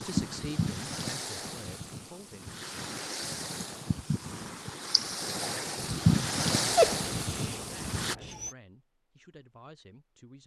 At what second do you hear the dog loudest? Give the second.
7 s.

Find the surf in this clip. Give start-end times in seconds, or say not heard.
0.0-8.2.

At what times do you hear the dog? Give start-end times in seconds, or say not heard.
6.6-8.6.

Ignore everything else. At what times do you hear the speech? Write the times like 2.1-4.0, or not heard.
0.0-2.6, 7.5-10.4.